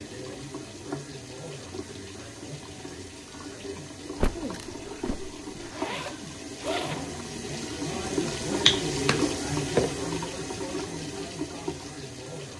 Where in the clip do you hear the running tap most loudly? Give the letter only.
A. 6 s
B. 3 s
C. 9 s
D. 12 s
C.